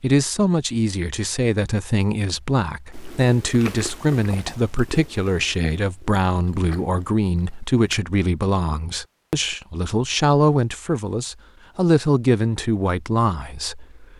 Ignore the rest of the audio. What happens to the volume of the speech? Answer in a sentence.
The loudness of the speech stays about the same.